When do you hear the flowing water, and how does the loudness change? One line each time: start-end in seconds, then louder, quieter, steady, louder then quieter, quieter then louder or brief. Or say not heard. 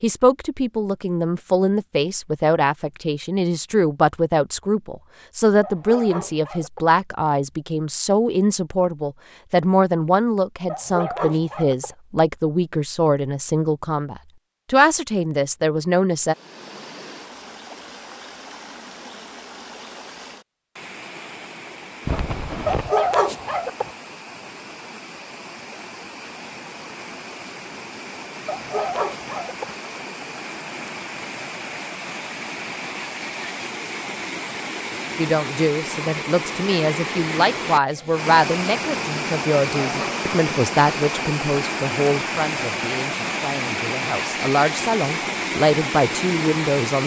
16.2-47.0 louder.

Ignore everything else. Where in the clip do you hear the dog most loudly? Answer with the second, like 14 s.
23 s.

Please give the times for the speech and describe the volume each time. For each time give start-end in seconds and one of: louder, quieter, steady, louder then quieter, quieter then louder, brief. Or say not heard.
0.0-16.4 steady
35.1-47.0 quieter then louder.